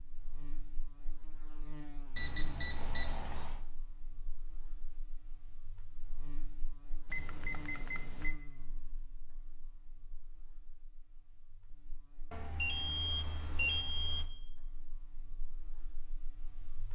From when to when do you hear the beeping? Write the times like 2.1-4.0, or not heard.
2.1-3.6, 7.1-8.3, 12.3-14.2.